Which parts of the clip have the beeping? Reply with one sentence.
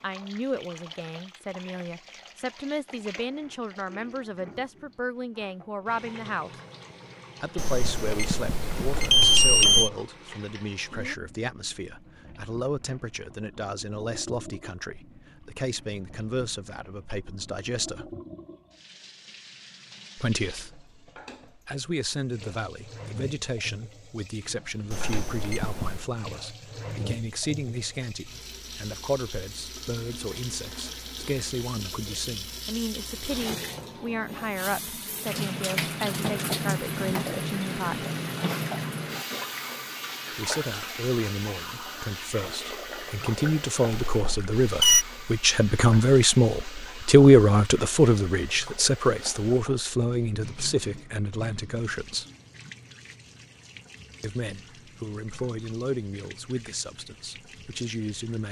You can hear the beeping from 7.5 to 9.9 s, from 24.9 to 26.1 s and from 43.9 to 45.0 s.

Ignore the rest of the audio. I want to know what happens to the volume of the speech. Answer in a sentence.
The loudness of the speech goes up.